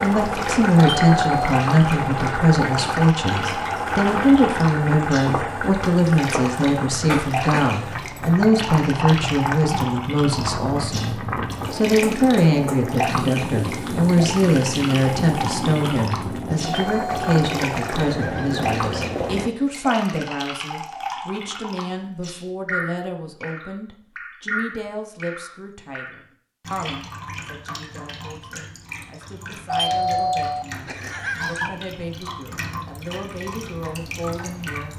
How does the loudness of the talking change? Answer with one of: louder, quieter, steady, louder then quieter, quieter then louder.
quieter.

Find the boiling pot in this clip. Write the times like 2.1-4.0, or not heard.
0.0-19.5.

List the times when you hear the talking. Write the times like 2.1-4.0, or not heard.
0.0-34.9.